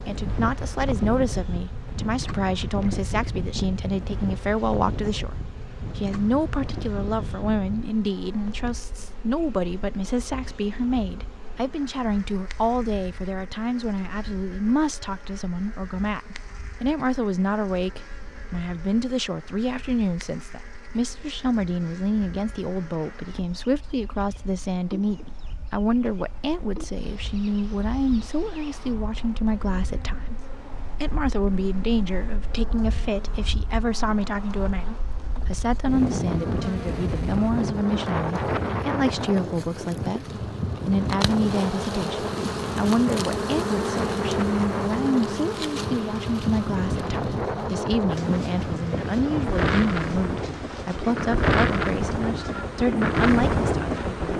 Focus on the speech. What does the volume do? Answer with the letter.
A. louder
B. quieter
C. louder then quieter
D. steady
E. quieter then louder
D.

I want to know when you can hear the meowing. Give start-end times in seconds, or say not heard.
not heard.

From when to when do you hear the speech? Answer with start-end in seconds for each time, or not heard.
0.1-54.3.